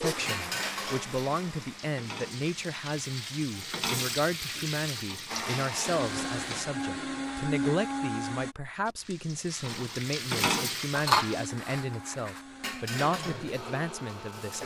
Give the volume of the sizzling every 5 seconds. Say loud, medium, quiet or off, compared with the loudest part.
medium, medium, loud.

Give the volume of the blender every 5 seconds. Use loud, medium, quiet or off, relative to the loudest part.
medium, loud, medium.